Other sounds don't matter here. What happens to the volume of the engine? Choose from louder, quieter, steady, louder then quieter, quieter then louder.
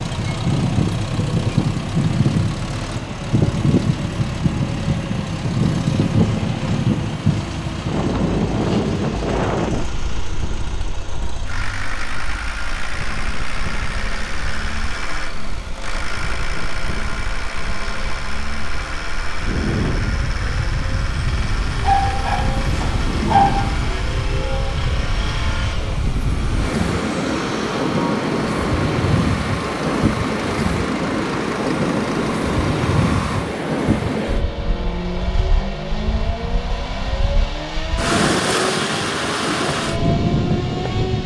steady.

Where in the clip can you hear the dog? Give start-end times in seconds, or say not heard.
21.8-23.6.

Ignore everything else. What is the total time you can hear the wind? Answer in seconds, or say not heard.
41 s.